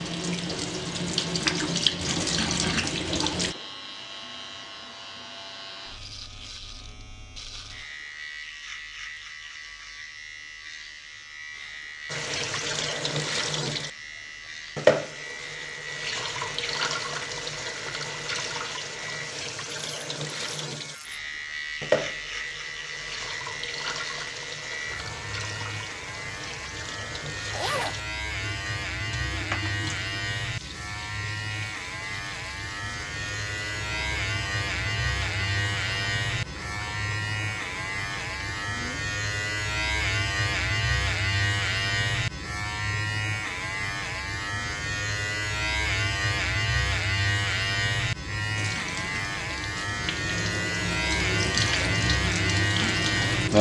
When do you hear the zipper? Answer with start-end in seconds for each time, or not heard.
27.5-28.0.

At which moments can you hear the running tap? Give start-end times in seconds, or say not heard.
0.0-3.5, 12.1-39.0, 48.5-53.5.